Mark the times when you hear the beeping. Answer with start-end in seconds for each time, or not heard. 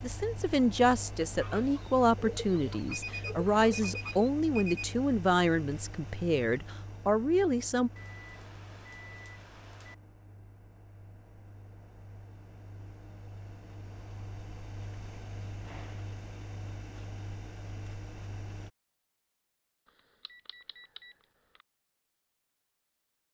2.9-4.9, 8.0-9.9, 20.2-21.1.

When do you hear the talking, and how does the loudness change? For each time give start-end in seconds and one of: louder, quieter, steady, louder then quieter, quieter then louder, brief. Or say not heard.
0.0-7.9 steady.